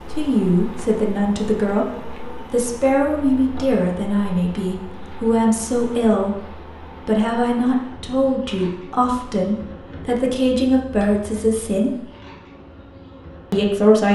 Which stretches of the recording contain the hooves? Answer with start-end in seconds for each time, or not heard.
not heard.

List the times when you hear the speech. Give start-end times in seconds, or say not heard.
0.1-1.9, 2.5-6.4, 7.0-12.0, 13.5-14.1.